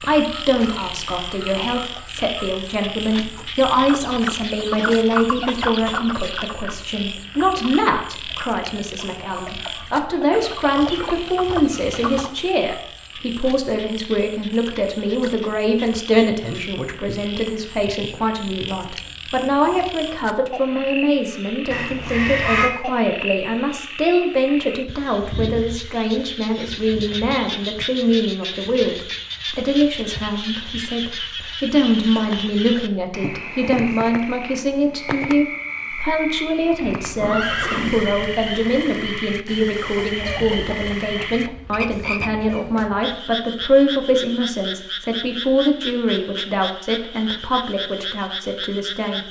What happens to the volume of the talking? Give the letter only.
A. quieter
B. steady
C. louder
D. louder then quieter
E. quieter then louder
B.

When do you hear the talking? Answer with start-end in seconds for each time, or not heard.
0.0-49.2.